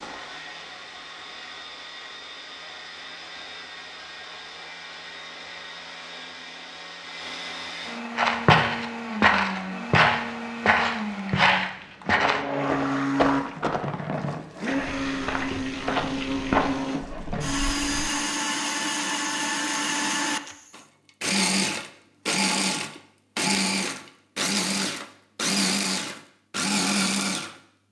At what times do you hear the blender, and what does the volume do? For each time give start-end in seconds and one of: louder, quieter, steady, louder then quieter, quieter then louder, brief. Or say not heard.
0.0-27.8 louder.